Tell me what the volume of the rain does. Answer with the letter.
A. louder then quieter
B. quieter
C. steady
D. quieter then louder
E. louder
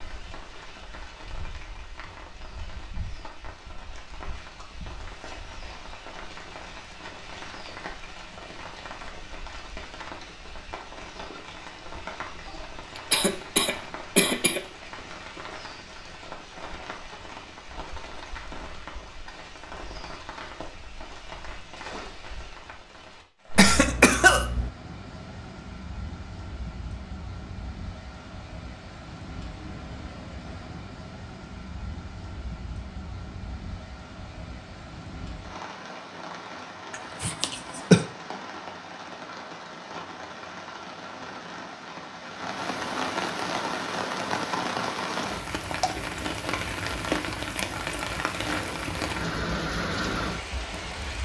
E.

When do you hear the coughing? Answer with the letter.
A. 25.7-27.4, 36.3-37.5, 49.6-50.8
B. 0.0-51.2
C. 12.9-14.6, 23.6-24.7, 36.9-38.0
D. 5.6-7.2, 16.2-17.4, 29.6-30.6
C.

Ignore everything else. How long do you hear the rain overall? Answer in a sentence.
The rain can be heard for 51 seconds in total.